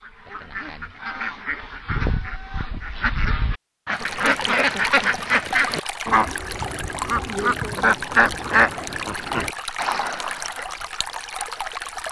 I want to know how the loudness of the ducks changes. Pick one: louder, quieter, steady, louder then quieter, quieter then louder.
louder.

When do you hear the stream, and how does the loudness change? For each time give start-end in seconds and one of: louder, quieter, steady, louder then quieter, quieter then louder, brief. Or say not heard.
3.9-12.0 steady.